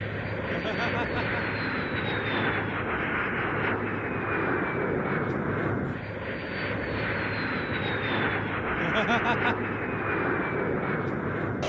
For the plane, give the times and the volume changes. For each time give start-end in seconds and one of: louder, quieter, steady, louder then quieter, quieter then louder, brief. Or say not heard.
0.0-11.6 steady.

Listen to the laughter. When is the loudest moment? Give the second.
9 s.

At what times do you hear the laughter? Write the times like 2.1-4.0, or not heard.
0.5-1.4, 8.7-9.7.